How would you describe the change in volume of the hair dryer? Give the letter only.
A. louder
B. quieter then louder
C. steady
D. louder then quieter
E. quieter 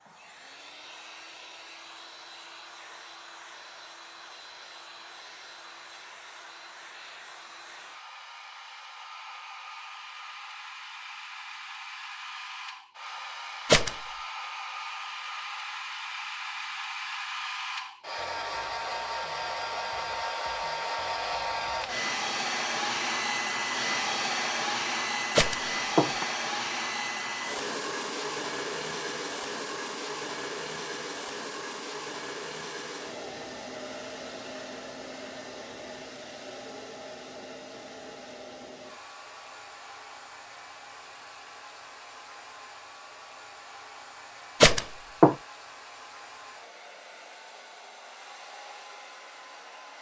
D.